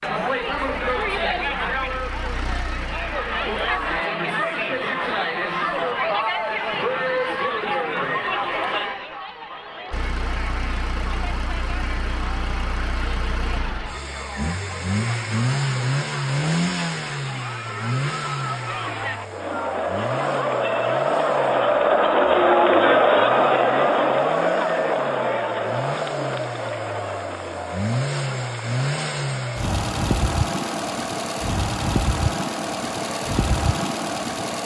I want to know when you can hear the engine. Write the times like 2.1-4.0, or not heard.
0.0-4.0, 9.9-34.6.